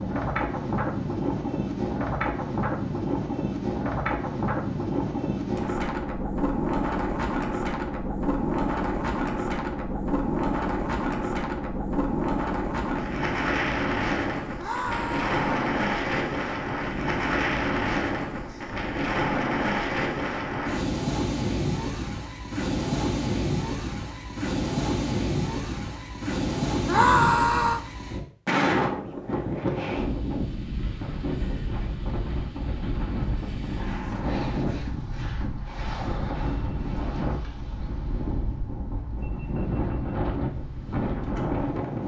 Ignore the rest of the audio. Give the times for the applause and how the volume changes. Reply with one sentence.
You can't hear the applause here.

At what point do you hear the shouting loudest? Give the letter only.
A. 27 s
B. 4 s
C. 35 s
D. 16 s
A.